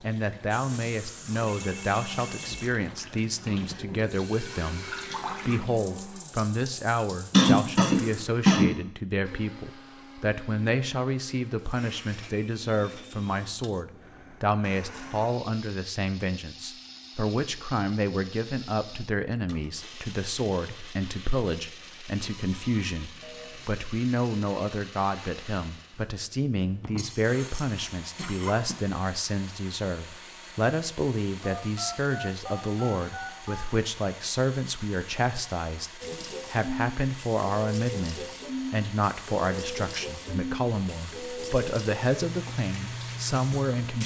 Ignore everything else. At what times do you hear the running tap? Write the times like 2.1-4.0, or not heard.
0.0-8.3, 36.0-44.0.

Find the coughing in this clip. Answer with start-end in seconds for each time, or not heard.
7.3-8.8, 26.7-28.8.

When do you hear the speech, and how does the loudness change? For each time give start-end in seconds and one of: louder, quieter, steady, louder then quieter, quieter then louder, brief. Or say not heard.
0.0-44.0 steady.